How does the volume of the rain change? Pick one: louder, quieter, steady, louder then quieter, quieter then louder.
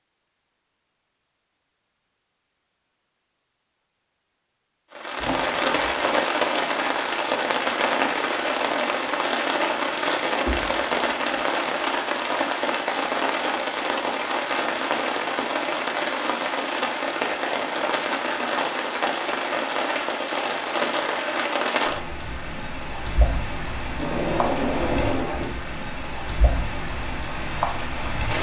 quieter.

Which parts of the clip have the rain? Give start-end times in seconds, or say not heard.
5.0-28.3.